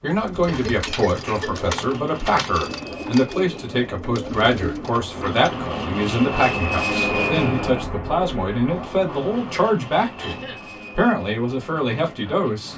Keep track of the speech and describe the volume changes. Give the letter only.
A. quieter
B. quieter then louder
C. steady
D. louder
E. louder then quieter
C.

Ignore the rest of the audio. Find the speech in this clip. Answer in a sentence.
The speech can be heard from 0.0 to 12.7 s.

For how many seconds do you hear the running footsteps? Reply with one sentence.
The running footsteps can't be heard in this clip.